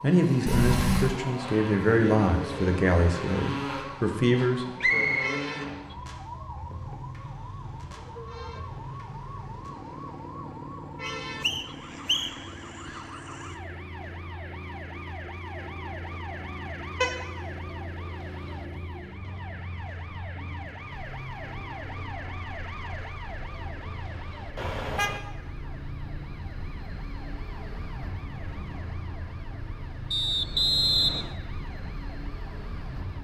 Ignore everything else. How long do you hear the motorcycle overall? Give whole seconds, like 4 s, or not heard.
33 s.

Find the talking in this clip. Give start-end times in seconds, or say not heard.
0.0-5.1.